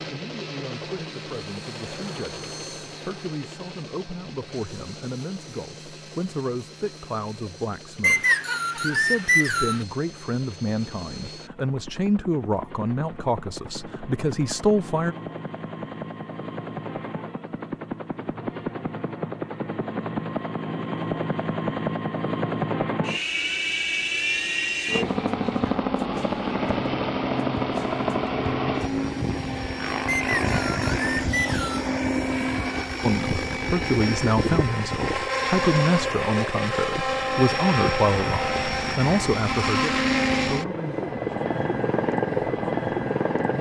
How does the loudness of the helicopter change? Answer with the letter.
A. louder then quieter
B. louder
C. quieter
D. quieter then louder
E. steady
B.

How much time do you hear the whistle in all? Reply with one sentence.
The whistle can be heard for 4 seconds in total.